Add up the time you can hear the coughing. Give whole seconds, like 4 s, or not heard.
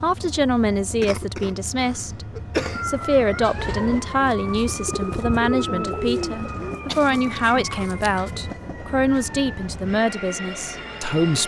3 s.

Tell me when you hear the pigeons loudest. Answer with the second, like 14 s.
6 s.